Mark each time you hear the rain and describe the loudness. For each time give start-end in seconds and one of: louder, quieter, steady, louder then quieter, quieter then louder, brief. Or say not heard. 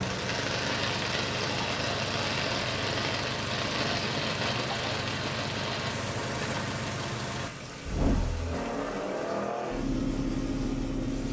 0.0-11.2 quieter.